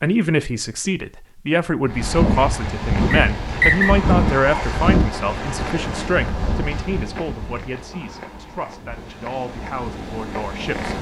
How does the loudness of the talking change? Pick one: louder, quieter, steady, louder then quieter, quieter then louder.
quieter.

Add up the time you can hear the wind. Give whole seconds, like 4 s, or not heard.
9 s.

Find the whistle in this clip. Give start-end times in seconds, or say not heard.
3.1-4.0.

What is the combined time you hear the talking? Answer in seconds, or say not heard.
11 s.